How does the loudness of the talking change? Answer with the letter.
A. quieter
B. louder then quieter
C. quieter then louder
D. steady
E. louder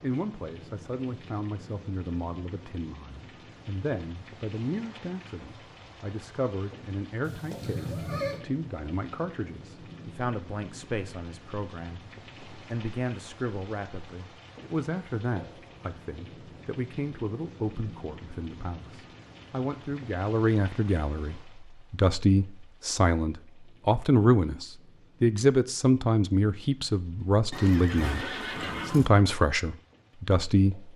E.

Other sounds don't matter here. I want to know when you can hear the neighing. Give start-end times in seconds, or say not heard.
7.2-8.4, 27.5-29.1.